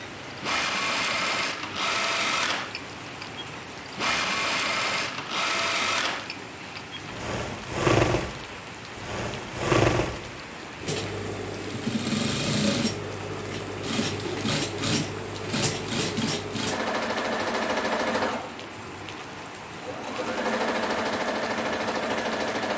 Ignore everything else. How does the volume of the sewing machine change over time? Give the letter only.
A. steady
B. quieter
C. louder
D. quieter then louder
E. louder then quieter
A.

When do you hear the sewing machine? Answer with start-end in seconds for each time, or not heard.
0.0-22.7.